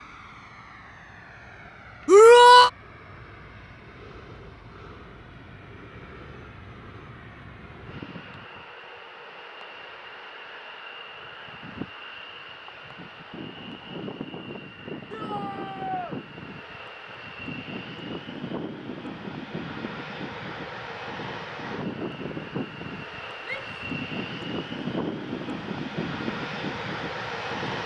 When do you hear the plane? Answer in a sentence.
The plane can be heard from 0.0 to 27.8 s.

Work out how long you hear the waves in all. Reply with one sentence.
You can't hear the waves here.